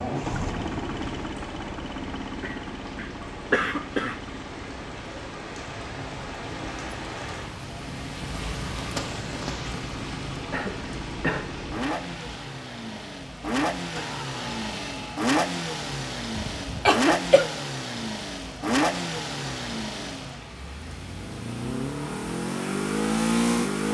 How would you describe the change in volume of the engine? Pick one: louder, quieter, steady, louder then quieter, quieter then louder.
quieter then louder.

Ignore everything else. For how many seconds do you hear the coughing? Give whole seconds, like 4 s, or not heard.
4 s.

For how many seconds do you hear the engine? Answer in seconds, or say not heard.
24 s.